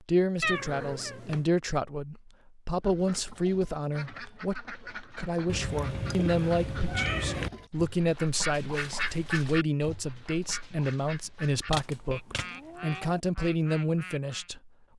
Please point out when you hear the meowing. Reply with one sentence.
The meowing can be heard from 0.4 to 1.4 s, from 5.5 to 7.5 s and from 11.7 to 13.2 s.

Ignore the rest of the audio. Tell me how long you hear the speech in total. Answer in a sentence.
The speech can be heard for 15 seconds in total.